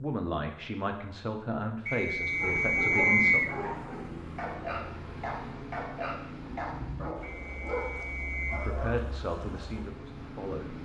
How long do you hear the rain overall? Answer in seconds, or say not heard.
not heard.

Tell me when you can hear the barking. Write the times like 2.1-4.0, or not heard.
2.4-9.0.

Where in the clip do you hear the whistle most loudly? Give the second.
3 s.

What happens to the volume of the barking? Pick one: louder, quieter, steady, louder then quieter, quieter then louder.
steady.